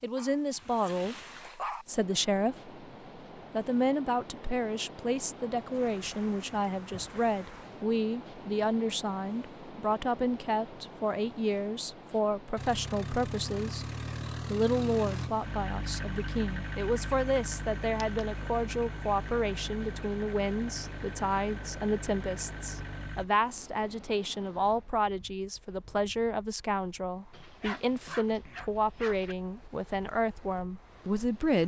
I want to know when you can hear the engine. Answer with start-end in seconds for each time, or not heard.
12.6-23.2.